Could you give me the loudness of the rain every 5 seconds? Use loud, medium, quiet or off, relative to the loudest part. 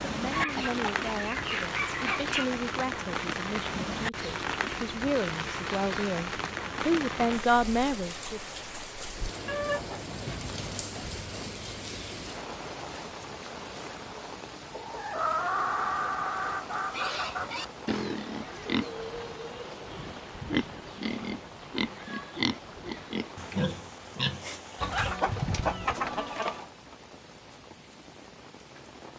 loud, loud, medium, medium, quiet, quiet.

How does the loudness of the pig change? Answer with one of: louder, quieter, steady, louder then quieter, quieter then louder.
quieter then louder.